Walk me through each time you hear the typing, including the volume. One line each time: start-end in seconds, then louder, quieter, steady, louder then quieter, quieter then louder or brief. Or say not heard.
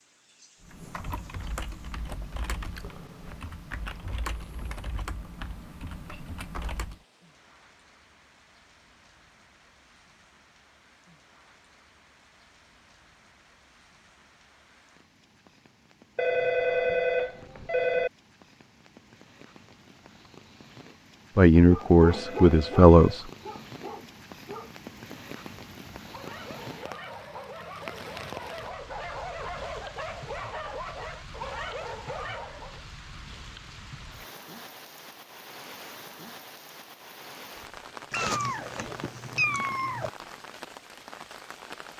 0.6-7.0 steady.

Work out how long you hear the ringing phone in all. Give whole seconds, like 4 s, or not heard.
3 s.